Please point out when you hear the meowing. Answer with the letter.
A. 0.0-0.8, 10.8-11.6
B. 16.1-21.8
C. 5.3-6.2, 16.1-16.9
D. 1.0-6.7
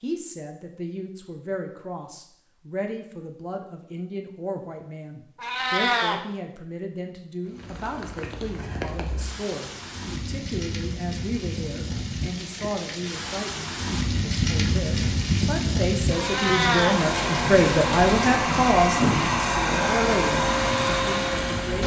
C.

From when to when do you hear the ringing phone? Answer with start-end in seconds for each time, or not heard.
not heard.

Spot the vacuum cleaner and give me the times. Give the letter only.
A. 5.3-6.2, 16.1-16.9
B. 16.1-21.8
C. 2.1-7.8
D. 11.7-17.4
B.